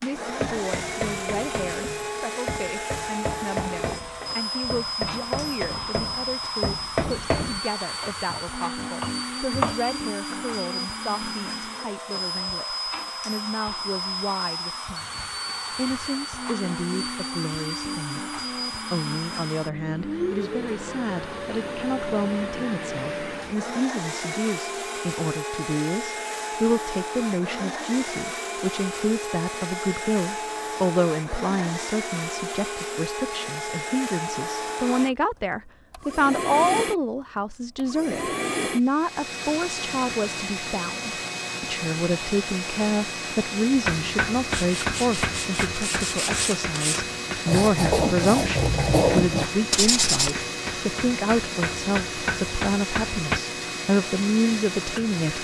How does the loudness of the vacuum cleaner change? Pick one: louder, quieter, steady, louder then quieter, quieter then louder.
steady.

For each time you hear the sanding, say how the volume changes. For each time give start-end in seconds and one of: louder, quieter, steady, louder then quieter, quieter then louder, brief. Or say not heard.
44.5-50.4 louder.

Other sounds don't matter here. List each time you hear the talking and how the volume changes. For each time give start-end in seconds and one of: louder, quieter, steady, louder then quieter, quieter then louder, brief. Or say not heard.
0.0-55.3 louder.